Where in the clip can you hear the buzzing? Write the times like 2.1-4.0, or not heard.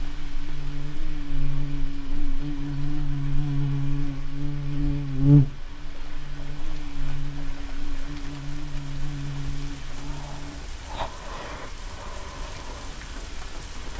0.0-10.7.